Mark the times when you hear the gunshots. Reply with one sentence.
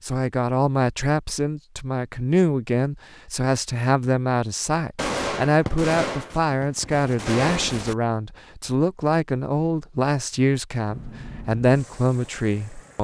You can hear the gunshots from 5.0 to 8.0 s.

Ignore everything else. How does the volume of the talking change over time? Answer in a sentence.
The loudness of the talking stays about the same.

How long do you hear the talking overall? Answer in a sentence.
You can hear the talking for 13 seconds altogether.